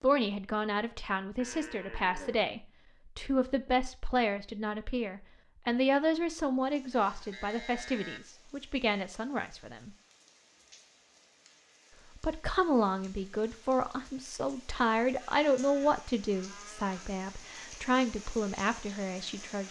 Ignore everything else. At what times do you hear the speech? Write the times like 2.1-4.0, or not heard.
0.0-9.9, 12.2-19.6.